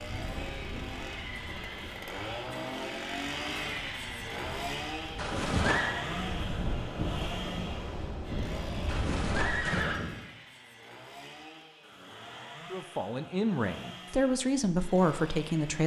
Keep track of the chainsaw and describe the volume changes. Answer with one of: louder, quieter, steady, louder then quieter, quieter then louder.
quieter.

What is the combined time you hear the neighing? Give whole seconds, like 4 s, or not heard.
2 s.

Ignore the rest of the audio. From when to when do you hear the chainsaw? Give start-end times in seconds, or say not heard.
0.0-15.8.